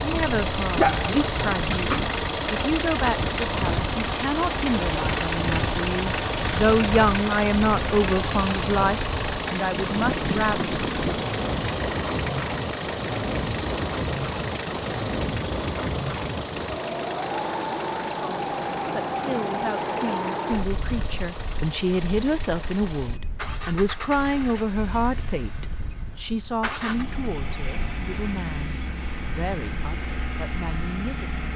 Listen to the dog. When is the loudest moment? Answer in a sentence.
The volume of the dog peaks at 1 second.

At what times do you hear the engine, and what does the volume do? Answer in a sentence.
The engine can be heard from 0.0 to 31.5 s, getting quieter.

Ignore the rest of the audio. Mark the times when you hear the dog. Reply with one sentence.
The dog can be heard from 0.7 to 2.1 s.